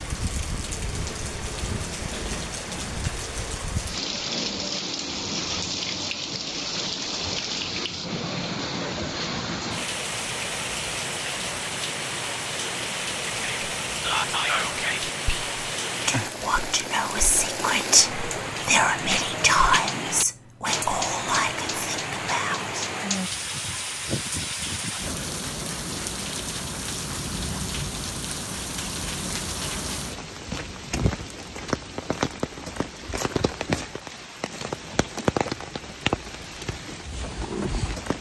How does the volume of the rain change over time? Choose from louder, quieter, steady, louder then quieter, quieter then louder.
steady.